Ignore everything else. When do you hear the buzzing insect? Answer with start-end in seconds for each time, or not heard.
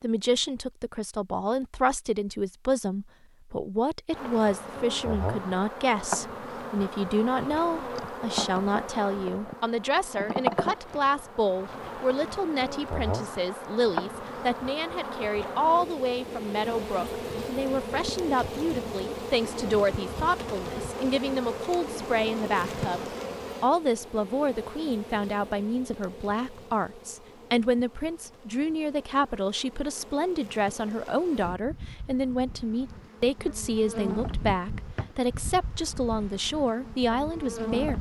4.1-37.9.